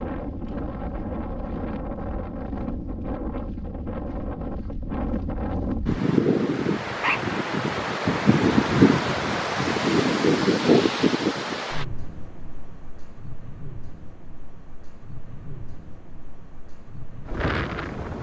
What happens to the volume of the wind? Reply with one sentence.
The volume of the wind goes up, then down.